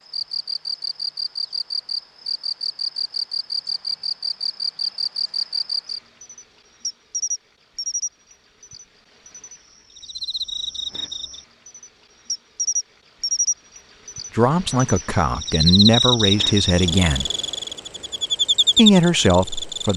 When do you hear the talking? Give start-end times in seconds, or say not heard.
14.3-17.3, 18.8-19.9.